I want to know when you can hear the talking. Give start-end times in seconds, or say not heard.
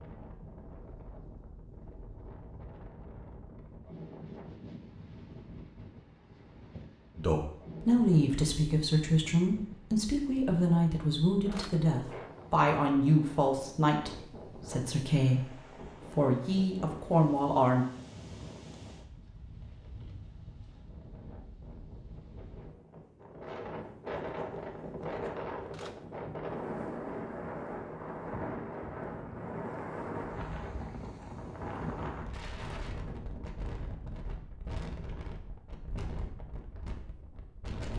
7.2-17.9.